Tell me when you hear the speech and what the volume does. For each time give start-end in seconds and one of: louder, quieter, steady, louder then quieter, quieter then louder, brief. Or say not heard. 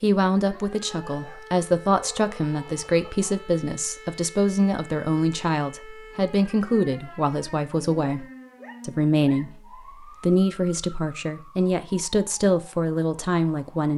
0.0-13.9 steady.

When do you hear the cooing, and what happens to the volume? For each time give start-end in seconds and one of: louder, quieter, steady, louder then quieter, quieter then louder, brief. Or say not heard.
not heard.